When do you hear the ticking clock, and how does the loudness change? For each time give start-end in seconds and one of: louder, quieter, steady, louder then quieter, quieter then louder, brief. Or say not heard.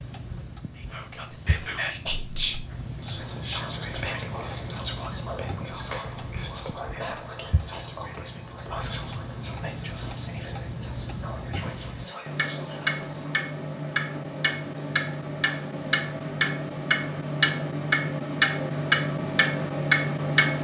0.0-20.6 louder.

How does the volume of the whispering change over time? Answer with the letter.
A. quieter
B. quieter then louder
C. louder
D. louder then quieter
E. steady
A.